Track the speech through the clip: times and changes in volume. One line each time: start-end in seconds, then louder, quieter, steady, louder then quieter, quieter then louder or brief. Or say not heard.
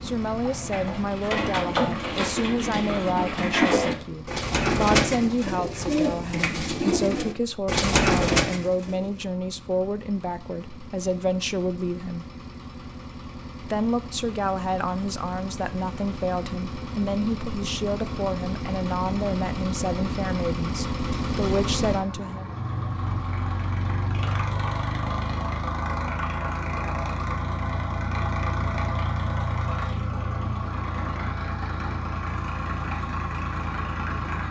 0.0-12.2 steady
13.6-22.6 steady.